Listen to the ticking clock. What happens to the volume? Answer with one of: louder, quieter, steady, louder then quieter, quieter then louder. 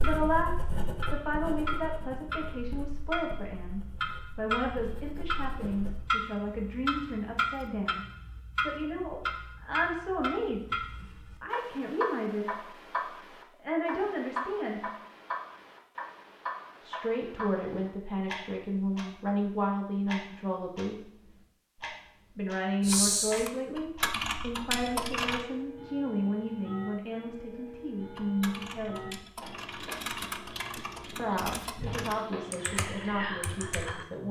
quieter.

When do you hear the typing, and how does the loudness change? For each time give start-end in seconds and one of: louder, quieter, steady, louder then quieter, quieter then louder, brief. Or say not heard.
22.8-25.4 brief
28.1-34.0 louder.